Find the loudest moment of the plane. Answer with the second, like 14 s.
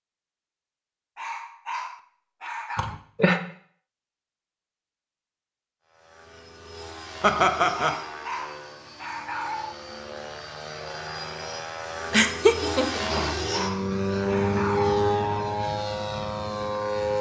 15 s.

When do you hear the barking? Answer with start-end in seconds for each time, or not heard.
1.1-3.0, 7.8-9.8, 13.0-15.0.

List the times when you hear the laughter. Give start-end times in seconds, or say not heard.
2.8-3.4, 7.2-8.0, 12.1-13.2.